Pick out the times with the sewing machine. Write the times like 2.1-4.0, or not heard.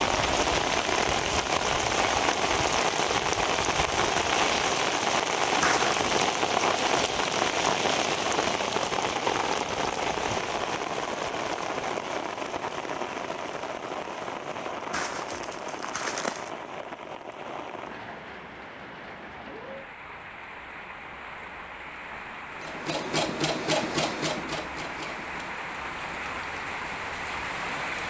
22.6-25.5.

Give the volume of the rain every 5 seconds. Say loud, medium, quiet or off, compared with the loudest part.
loud, loud, medium, quiet, quiet, medium.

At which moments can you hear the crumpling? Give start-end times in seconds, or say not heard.
5.6-6.2, 14.9-16.5.